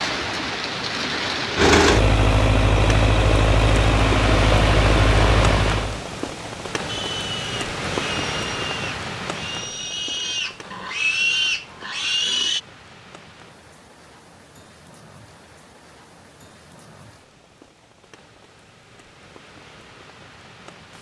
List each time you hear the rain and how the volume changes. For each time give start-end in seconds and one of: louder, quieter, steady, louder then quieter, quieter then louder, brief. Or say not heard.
0.0-20.9 quieter.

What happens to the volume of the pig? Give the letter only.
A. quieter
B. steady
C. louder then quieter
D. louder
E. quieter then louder
D.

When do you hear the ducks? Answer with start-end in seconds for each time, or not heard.
not heard.